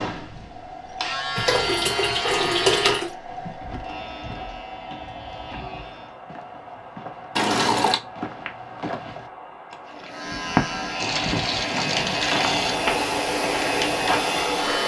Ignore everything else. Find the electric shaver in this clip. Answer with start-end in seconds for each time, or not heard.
0.0-6.2, 10.1-14.8.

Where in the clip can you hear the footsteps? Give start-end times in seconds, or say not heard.
3.2-14.4.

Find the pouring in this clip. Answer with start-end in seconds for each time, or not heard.
1.4-3.1, 7.3-8.0, 11.0-12.8.